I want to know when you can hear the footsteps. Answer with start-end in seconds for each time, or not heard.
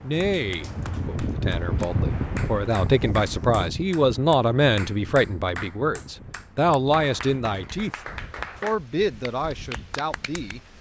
not heard.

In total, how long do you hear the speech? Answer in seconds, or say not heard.
10 s.